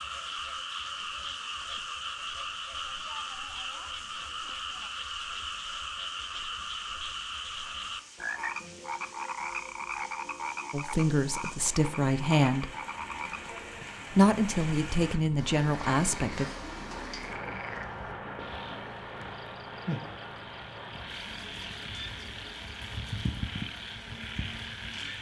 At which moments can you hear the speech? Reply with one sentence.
The speech can be heard from 10.7 to 12.7 s and from 14.1 to 16.4 s.